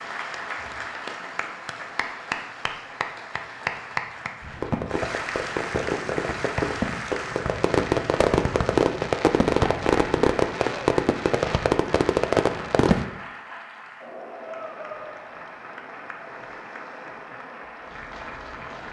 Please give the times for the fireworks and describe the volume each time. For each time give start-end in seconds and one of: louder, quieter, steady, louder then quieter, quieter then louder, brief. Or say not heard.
4.5-13.1 louder.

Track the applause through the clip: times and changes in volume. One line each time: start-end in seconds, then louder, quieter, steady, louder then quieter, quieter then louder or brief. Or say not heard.
0.0-18.8 quieter.